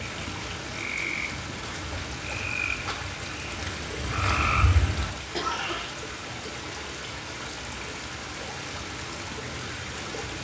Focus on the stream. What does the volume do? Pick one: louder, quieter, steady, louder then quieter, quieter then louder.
steady.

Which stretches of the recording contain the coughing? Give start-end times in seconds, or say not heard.
5.3-6.0.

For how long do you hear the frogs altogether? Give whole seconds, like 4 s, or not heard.
6 s.